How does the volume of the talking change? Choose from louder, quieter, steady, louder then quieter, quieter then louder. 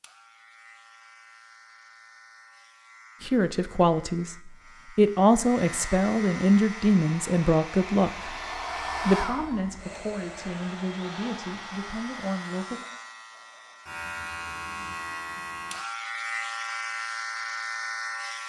quieter.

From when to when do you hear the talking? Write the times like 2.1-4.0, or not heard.
3.2-8.3, 9.1-12.8.